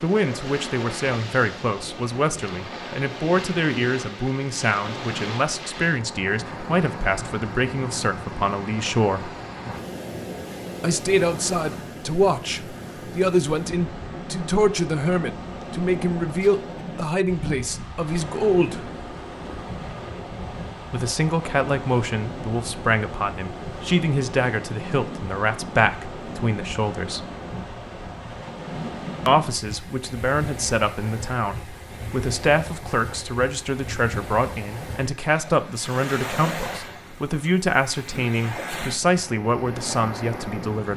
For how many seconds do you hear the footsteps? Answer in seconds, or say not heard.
not heard.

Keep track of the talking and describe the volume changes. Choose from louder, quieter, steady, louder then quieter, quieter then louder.
steady.